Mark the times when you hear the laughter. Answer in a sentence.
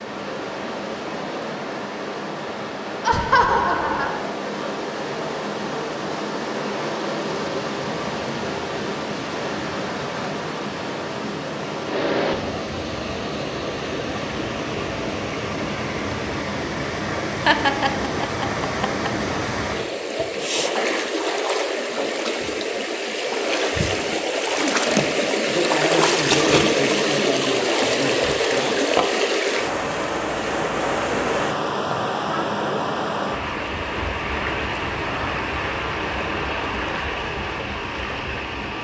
The laughter can be heard from 3.0 to 4.2 s, from 17.4 to 19.1 s and from 31.9 to 32.5 s.